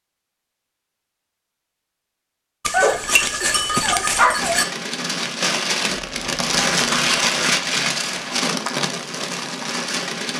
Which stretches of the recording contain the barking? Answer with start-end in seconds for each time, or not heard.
2.6-4.7.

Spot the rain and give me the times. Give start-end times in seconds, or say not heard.
4.3-10.3.